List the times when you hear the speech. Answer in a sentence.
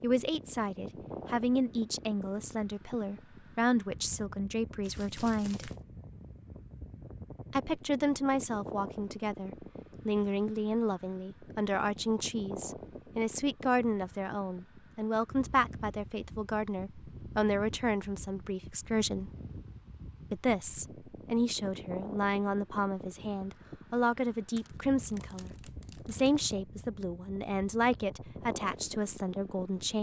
The speech can be heard from 0.0 to 5.7 s, from 7.5 to 19.3 s and from 20.3 to 29.9 s.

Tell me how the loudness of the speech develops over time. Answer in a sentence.
The volume of the speech stays about the same.